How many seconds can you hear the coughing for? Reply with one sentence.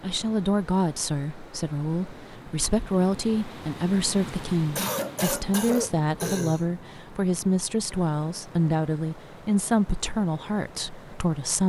You can hear the coughing for 2 seconds altogether.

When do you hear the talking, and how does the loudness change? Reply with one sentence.
You can hear the talking from 0.0 to 11.6 s, at a steady volume.